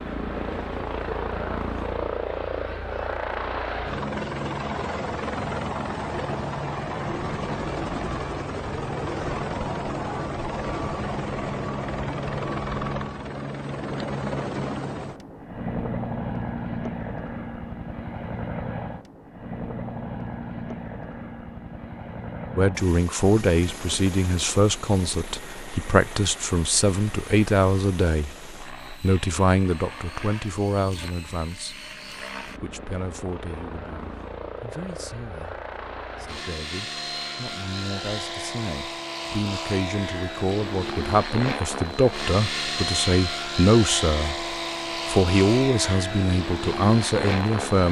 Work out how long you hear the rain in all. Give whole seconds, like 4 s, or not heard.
not heard.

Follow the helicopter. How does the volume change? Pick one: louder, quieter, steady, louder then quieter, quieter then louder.
quieter then louder.